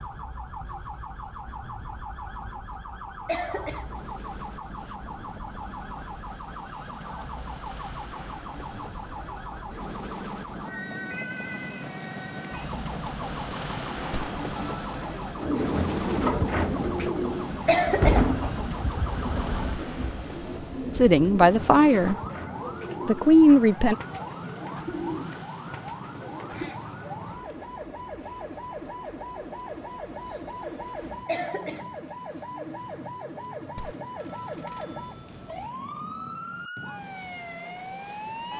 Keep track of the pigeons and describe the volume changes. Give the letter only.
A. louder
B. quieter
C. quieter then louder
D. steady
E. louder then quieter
B.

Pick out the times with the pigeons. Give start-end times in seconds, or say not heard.
15.3-26.8.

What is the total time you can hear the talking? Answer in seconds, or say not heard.
2 s.